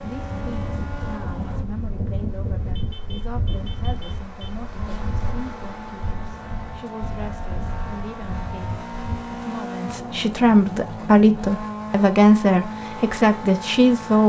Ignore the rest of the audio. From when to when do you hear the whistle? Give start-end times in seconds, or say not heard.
not heard.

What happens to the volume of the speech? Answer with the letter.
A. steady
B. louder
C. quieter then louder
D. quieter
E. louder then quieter
B.